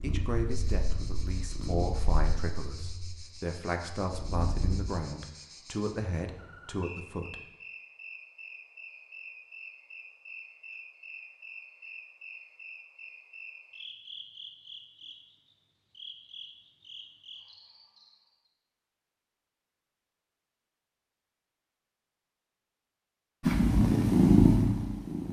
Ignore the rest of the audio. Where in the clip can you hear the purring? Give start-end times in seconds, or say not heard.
0.0-4.9, 23.4-25.2.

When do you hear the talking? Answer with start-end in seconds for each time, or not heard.
0.0-7.4.